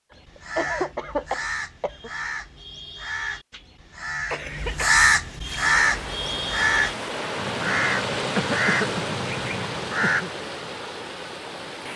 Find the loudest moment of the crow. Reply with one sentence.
The loudest moment of the crow is at 5 seconds.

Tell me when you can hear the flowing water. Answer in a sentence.
You can hear the flowing water from 5.4 to 11.9 s.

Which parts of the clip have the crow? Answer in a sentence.
The crow can be heard from 0.1 to 10.2 s.